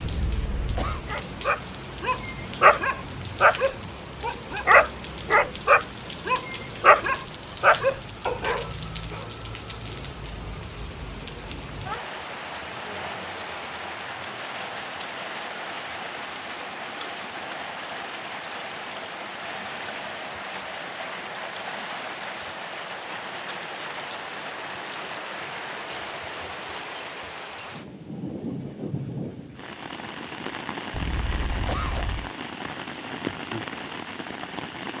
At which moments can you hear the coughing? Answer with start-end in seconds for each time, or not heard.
0.0-1.1, 30.9-32.3.